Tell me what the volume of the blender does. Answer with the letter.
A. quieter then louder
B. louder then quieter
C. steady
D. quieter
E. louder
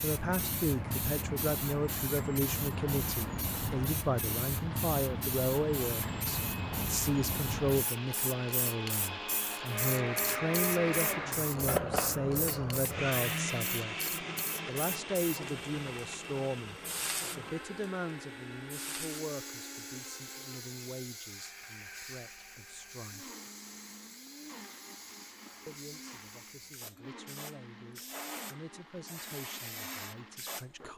B.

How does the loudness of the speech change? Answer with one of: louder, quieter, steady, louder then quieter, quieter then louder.
quieter.